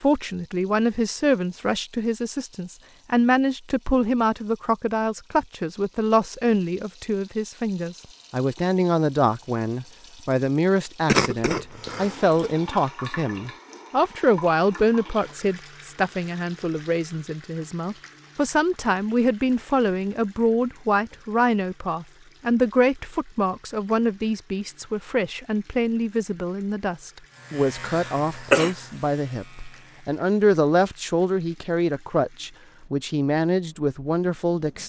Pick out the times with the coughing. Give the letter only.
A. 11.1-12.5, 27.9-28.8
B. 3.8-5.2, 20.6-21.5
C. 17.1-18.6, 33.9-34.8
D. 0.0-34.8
A.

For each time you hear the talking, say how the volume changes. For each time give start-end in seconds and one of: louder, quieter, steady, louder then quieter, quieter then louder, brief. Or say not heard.
0.0-34.8 steady.